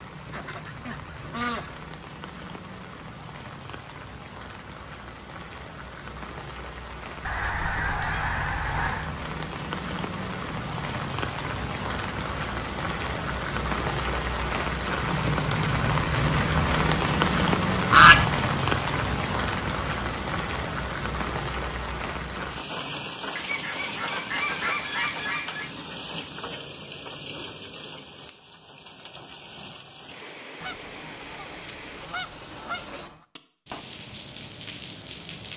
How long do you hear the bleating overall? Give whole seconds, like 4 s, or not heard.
not heard.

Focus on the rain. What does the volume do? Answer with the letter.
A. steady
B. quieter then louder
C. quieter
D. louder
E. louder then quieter
E.